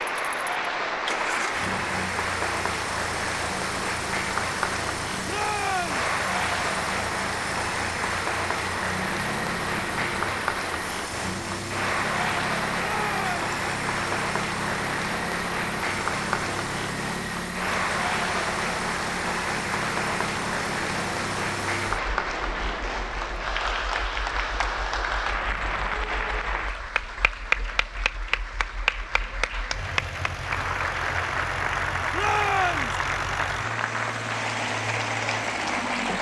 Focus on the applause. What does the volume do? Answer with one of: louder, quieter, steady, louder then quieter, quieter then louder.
steady.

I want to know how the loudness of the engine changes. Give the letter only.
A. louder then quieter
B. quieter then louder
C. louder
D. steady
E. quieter
B.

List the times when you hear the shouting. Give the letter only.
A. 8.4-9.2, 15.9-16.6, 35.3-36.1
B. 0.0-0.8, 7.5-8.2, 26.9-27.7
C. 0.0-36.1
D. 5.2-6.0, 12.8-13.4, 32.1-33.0
D.